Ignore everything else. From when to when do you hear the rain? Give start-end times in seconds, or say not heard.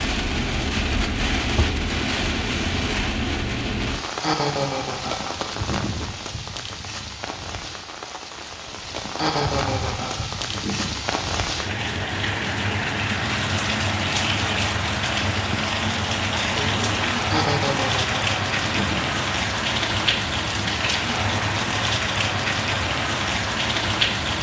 0.0-24.3.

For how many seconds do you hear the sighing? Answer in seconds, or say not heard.
6 s.